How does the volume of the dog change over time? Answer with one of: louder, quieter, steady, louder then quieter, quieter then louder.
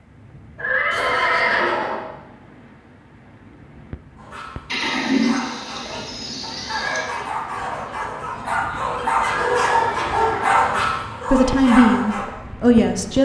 louder.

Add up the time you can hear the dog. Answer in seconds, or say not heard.
8 s.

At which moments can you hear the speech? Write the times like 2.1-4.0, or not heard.
11.3-13.2.